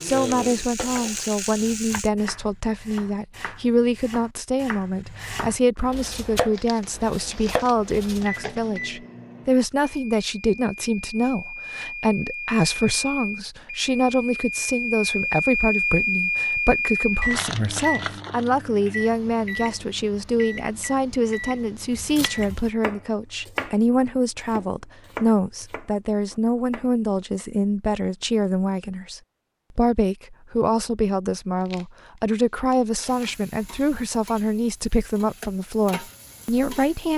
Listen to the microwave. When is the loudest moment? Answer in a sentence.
The loudest moment of the microwave is at 16 seconds.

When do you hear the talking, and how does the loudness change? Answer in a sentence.
The talking can be heard from 0.0 to 37.1 s, at a steady volume.